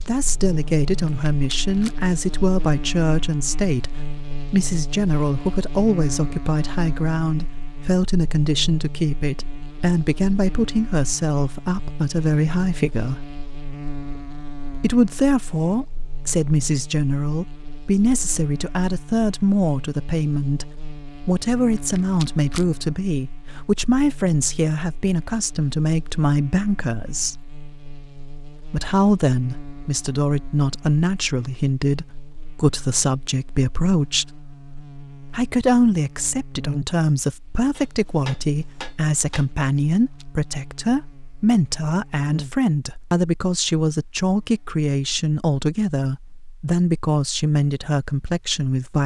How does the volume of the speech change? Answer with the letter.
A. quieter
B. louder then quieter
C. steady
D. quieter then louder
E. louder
C.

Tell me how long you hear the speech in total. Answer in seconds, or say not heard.
45 s.